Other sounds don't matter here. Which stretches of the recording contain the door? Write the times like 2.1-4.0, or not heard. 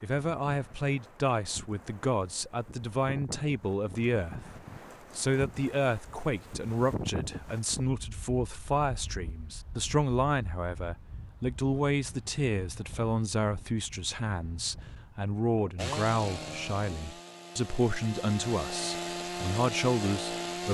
not heard.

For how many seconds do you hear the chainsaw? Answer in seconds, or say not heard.
5 s.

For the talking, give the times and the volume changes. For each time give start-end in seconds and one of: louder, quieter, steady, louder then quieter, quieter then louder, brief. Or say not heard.
0.0-4.5 steady
5.2-20.6 steady.